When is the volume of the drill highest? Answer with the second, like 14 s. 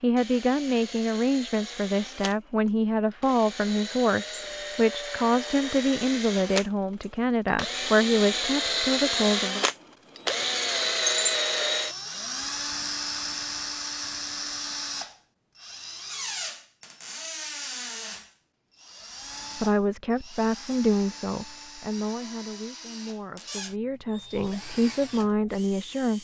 11 s.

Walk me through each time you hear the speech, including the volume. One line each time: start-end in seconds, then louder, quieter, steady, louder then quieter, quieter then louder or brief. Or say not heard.
0.0-9.7 steady
19.6-26.1 quieter then louder.